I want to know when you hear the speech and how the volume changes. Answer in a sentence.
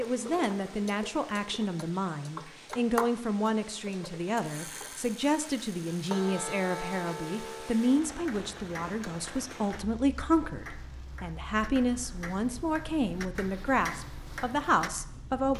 You can hear the speech from 0.0 to 15.5 s, at a steady volume.